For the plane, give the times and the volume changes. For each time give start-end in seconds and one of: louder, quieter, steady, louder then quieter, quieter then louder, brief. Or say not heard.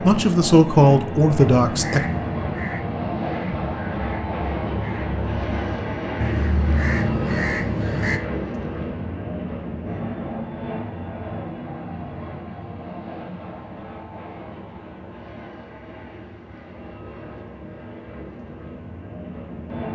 0.0-19.8 quieter.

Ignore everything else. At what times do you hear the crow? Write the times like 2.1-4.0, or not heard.
1.5-8.2.